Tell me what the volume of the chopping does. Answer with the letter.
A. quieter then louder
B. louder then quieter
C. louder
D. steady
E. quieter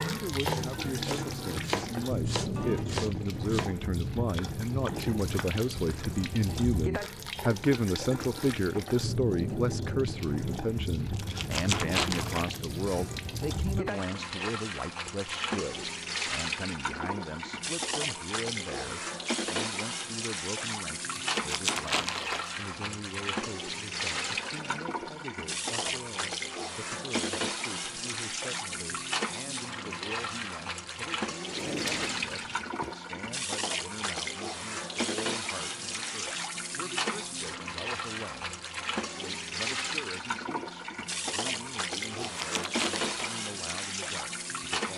E.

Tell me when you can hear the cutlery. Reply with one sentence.
The cutlery can't be heard in this clip.